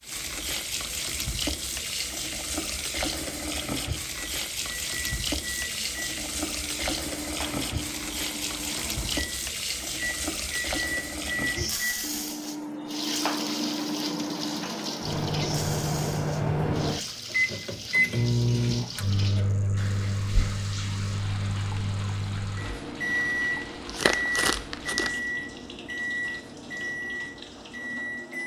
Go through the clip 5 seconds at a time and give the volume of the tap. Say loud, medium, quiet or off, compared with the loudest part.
loud, loud, loud, medium, medium, quiet.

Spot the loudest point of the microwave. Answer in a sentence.
The loudest moment of the microwave is at 18 seconds.